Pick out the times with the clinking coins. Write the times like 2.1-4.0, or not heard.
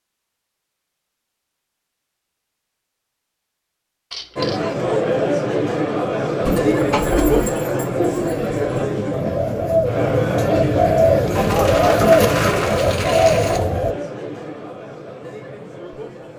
4.1-4.6, 11.3-13.7.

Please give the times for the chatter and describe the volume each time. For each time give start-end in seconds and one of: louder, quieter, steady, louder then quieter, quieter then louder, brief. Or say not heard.
4.3-16.3 quieter.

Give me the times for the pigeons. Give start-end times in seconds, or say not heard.
6.5-13.9.